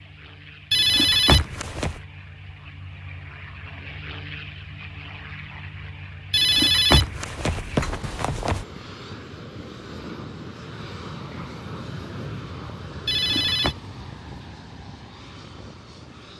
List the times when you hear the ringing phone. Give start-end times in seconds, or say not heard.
0.7-2.0, 6.3-8.7, 13.1-13.8.